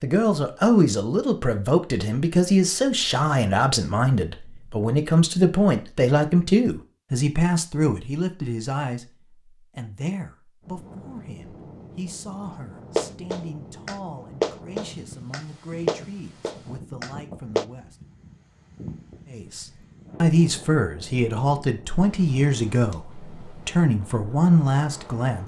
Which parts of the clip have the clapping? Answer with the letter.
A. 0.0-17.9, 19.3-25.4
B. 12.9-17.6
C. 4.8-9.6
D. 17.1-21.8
B.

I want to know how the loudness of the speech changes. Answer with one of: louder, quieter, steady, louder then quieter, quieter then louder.
quieter then louder.